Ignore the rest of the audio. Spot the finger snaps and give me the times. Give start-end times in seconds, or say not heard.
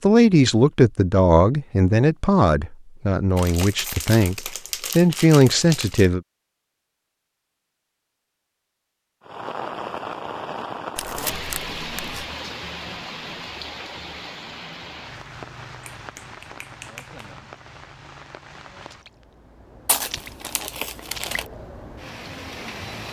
15.9-17.2.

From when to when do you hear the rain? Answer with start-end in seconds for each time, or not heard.
9.2-23.0.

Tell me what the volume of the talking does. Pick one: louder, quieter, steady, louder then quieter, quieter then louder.
quieter then louder.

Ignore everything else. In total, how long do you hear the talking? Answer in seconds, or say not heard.
6 s.